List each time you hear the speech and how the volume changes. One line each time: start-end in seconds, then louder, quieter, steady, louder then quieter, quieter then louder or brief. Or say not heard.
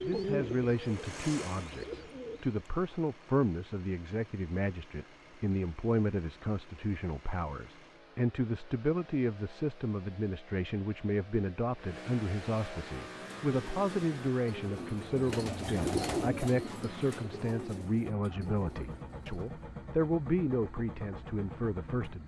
0.0-22.2 steady.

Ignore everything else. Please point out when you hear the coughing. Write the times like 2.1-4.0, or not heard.
not heard.